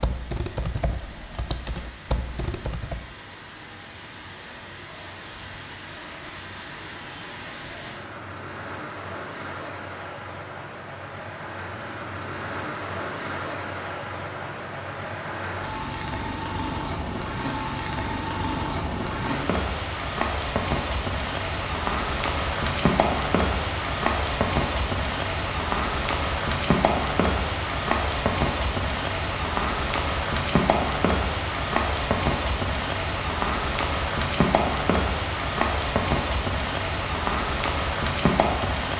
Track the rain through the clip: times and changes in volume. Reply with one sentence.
You can hear the rain from 0.0 to 38.9 s, getting louder.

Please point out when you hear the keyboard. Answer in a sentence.
The keyboard can be heard from 0.0 to 3.1 s.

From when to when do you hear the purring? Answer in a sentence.
You can't hear the purring here.